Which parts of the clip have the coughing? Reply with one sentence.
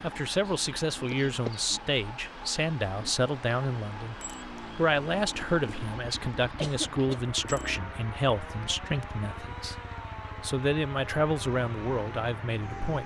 You can hear the coughing from 1.1 to 1.6 s and from 6.6 to 7.2 s.